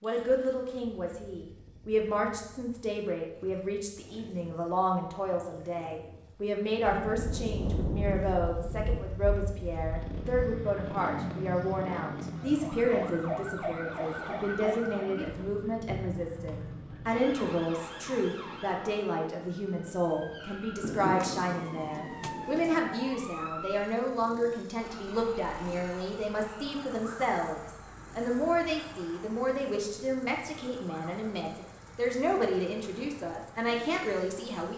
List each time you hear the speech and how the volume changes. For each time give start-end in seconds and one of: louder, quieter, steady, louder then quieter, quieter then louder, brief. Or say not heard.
0.0-34.7 steady.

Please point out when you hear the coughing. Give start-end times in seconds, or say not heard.
not heard.